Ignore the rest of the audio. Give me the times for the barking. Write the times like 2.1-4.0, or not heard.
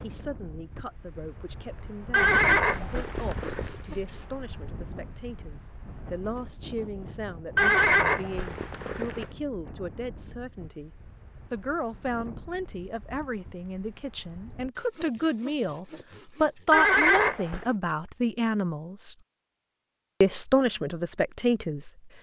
not heard.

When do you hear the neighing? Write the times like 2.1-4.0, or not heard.
2.1-3.8, 7.5-9.2, 16.7-17.6.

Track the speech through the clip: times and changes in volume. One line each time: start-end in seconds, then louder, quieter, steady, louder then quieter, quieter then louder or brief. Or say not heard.
0.0-19.1 louder
20.2-21.9 brief.